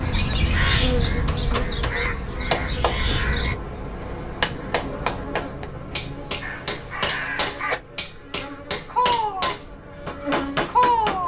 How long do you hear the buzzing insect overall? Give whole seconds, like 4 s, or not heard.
11 s.